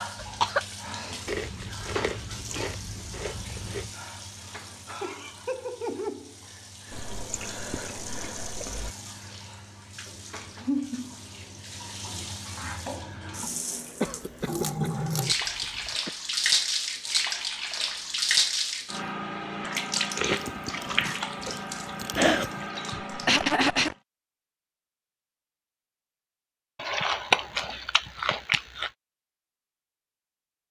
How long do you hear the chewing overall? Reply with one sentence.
The chewing can be heard for 11 seconds in total.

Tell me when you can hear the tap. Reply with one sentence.
You can hear the tap from 0.0 to 23.9 s.